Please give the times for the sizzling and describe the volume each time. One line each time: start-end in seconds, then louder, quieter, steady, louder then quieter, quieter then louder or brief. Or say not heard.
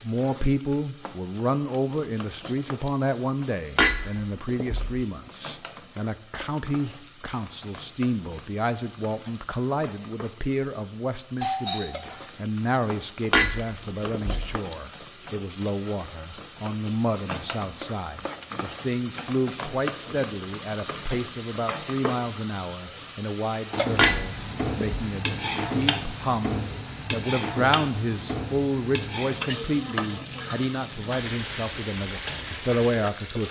0.0-33.4 louder.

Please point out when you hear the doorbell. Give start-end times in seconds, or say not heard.
11.4-12.1.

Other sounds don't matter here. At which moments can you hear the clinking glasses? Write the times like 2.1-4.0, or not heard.
3.8-5.0, 13.3-14.6, 23.9-25.1.